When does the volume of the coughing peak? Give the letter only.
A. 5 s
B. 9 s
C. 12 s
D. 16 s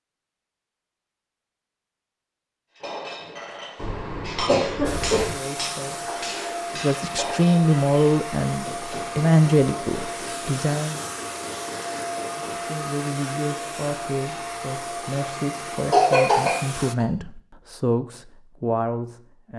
D.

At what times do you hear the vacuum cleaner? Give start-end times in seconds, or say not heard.
4.8-16.9.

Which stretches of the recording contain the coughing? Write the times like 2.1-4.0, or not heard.
3.8-5.3, 15.9-17.1.